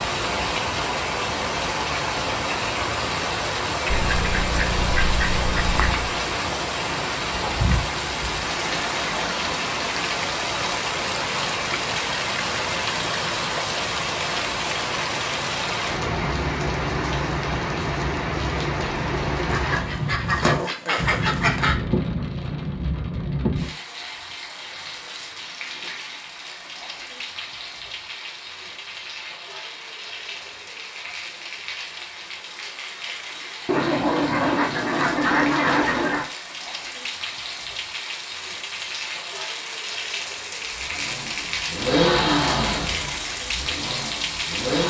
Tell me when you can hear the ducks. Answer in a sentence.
The ducks can be heard from 3.9 to 6.1 s, from 19.4 to 21.8 s and from 33.6 to 36.3 s.